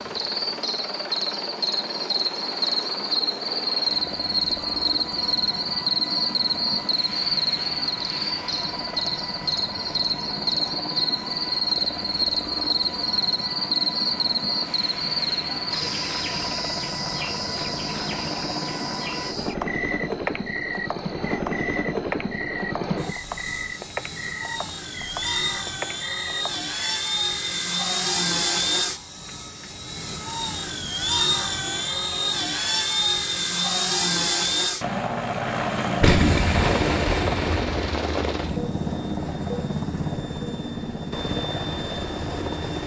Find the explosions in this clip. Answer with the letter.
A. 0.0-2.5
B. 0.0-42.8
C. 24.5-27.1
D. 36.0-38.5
D.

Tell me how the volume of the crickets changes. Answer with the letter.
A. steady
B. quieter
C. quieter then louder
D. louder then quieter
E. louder
B.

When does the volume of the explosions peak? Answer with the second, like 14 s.
36 s.